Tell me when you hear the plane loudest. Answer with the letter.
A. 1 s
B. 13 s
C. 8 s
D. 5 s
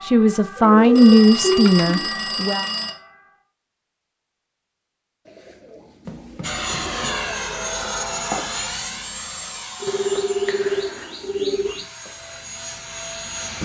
C.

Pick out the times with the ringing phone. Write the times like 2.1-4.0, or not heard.
0.9-2.9, 6.0-7.3, 9.8-11.7.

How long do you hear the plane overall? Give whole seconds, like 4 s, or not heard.
7 s.